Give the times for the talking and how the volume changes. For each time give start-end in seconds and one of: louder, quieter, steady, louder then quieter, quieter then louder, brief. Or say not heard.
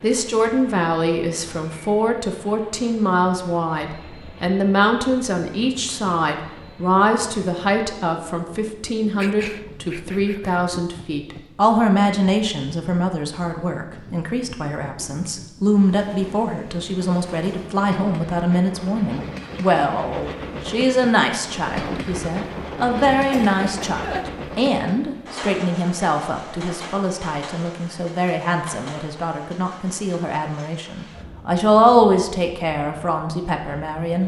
0.0-34.2 steady.